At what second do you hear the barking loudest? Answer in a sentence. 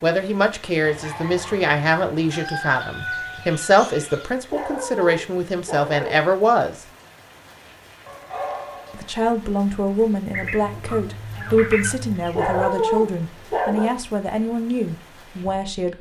The loudest moment of the barking is at 13 seconds.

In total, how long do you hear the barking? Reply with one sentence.
You can hear the barking for 6 seconds altogether.